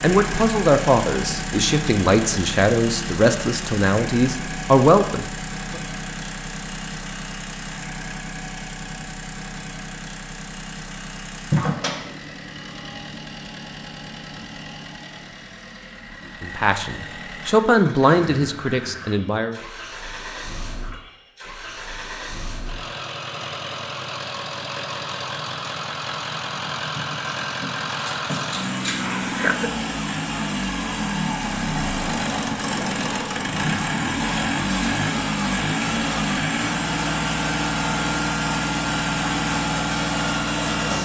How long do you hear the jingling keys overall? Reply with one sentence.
The jingling keys can be heard for 3 seconds in total.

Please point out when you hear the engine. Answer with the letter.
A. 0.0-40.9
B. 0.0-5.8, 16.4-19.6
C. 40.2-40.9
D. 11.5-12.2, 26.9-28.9
A.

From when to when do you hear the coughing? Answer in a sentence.
The coughing can be heard from 29.0 to 29.7 s.